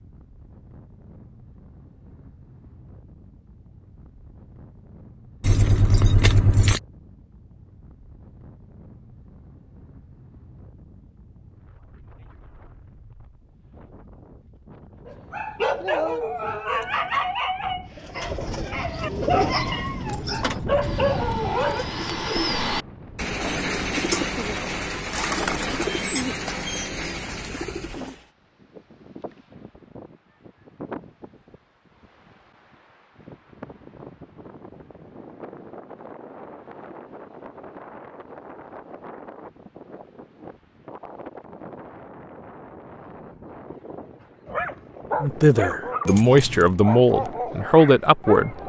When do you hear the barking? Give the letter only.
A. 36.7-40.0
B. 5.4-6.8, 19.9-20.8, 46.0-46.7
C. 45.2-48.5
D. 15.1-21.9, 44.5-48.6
D.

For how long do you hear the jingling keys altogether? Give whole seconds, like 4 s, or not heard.
3 s.